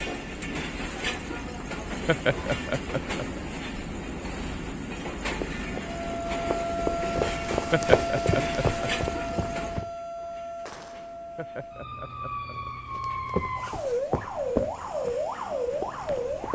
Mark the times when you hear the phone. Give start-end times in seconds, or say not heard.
not heard.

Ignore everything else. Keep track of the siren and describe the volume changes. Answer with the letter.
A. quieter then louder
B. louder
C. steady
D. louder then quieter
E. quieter
A.